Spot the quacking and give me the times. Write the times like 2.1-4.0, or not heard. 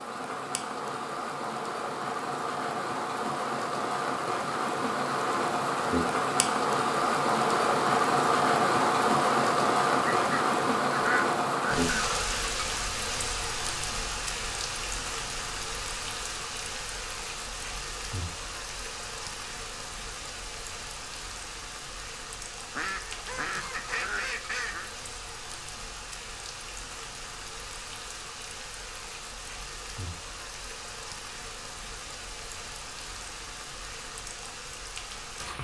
10.1-12.1, 22.8-24.9.